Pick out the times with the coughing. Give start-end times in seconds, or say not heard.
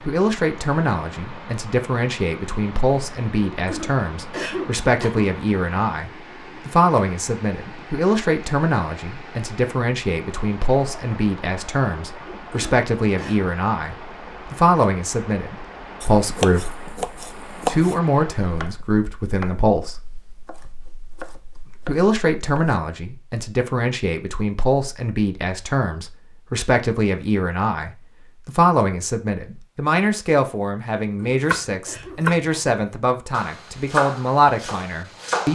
3.5-5.3, 12.2-13.4, 31.0-32.8.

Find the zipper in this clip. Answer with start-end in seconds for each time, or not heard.
not heard.